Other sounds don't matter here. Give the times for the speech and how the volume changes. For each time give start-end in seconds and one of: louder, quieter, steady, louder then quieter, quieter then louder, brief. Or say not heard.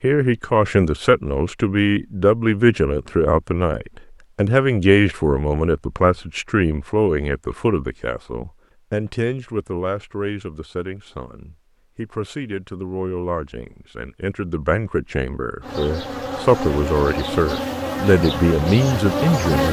0.0-19.6 quieter then louder.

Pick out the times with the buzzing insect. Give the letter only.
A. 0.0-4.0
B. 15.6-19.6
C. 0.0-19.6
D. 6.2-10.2
B.